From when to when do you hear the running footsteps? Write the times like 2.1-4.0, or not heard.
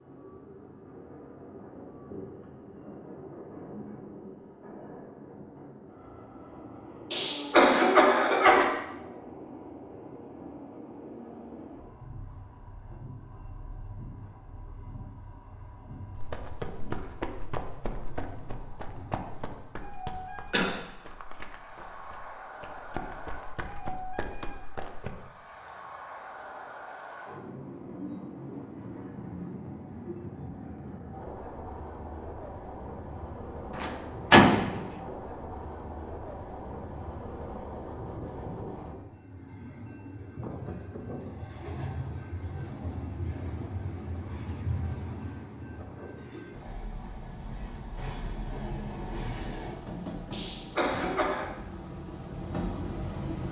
16.1-25.1.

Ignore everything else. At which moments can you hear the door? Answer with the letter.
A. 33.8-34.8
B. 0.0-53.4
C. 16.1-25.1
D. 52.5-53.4
A.